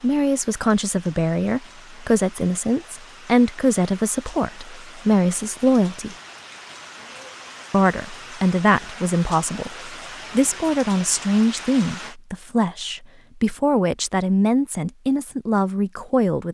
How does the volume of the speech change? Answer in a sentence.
The volume of the speech stays about the same.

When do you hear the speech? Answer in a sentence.
The speech can be heard from 0.0 to 6.2 s and from 7.7 to 16.4 s.